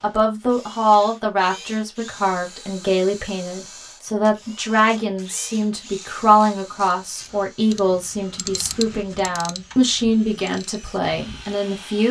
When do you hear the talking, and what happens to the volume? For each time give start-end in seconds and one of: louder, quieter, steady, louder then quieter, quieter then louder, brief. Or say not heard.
0.0-12.0 steady.